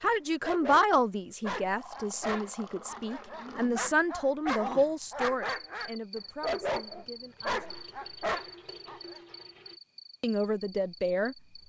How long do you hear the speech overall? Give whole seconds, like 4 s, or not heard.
9 s.